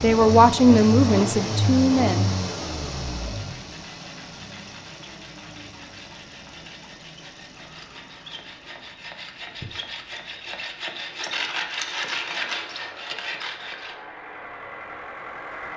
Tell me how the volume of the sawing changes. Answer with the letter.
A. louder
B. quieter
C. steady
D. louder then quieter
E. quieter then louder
A.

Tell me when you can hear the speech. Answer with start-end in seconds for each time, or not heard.
0.0-2.3.